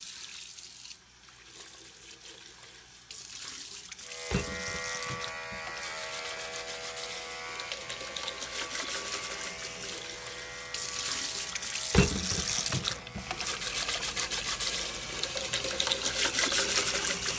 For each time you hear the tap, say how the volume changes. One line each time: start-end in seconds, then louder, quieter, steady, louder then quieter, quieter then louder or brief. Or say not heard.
0.0-17.3 louder.